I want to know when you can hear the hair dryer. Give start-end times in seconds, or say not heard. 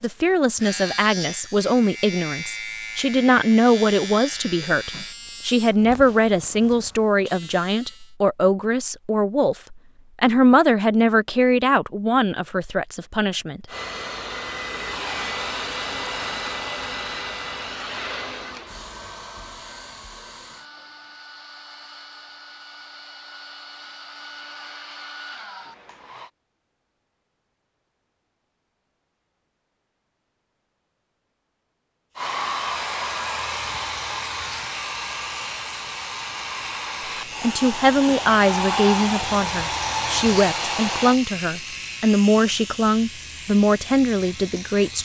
13.7-26.3, 32.1-41.2.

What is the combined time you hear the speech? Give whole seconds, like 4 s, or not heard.
21 s.